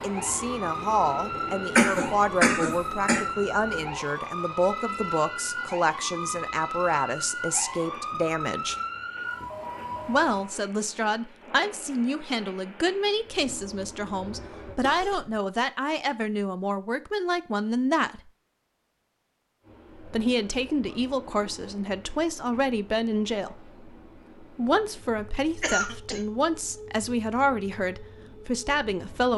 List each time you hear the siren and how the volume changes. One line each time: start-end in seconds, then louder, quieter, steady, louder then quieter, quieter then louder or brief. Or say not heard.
0.0-10.5 steady.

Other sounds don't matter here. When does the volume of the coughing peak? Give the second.
2 s.